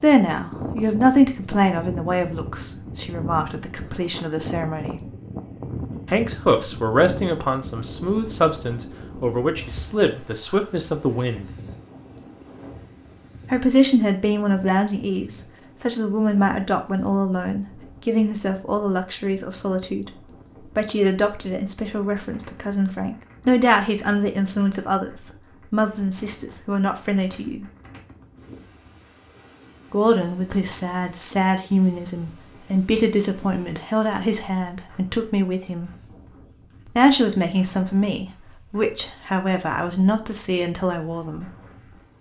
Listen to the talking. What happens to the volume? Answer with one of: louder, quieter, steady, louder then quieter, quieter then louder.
steady.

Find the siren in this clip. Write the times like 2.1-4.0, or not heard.
not heard.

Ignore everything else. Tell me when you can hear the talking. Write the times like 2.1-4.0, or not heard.
0.0-5.0, 6.1-11.4, 13.5-20.1, 20.8-27.6, 29.9-35.9, 36.9-41.5.